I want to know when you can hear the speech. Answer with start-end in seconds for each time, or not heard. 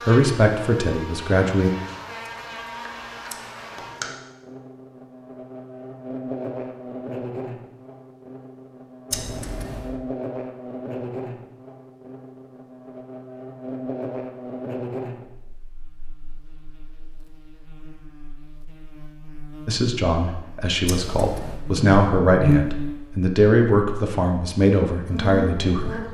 0.0-1.7, 19.6-26.0.